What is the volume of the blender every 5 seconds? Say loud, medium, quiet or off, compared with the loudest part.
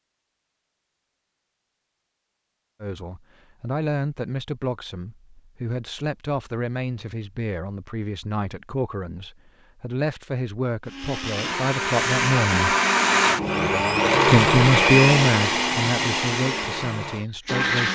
off, off, loud, loud.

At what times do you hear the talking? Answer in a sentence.
The talking can be heard from 2.8 to 12.8 s and from 14.2 to 17.9 s.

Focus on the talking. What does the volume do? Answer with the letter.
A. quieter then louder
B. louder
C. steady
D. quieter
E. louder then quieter
E.